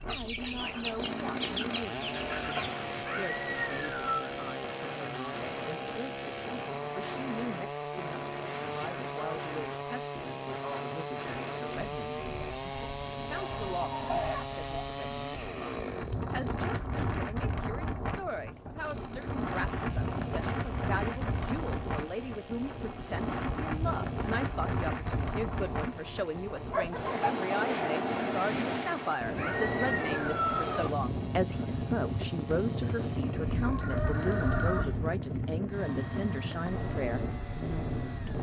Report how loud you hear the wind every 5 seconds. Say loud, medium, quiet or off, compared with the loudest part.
medium, medium, medium, loud, loud, loud, loud, loud.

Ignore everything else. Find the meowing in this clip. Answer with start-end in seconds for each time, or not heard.
3.0-4.2, 29.4-30.9.